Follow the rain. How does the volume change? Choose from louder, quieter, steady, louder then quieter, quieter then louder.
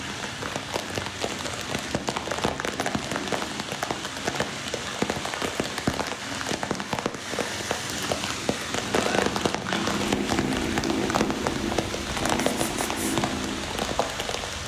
steady.